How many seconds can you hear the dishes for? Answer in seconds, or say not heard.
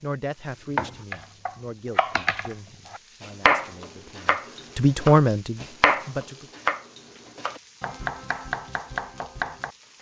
not heard.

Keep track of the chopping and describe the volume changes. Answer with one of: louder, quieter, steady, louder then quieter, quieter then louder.
louder then quieter.